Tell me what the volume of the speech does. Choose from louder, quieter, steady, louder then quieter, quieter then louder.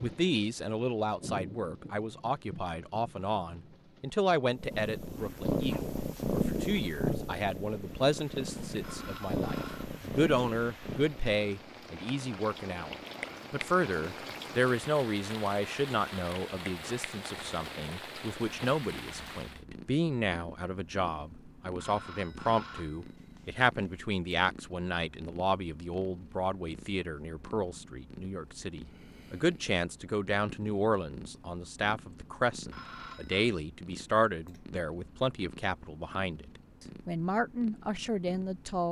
steady.